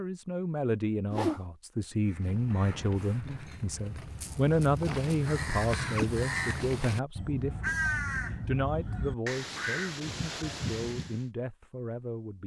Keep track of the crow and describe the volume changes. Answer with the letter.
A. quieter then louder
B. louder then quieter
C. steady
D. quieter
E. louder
E.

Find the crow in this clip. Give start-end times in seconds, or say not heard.
2.0-11.2.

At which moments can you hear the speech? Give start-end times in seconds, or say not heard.
0.0-12.4.